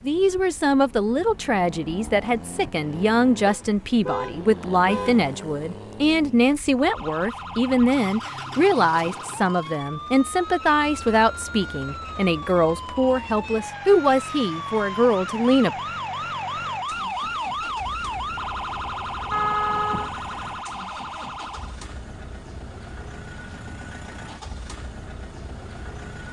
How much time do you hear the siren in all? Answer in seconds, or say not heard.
15 s.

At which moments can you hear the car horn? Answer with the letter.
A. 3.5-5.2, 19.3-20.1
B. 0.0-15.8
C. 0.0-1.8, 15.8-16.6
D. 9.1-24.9
A.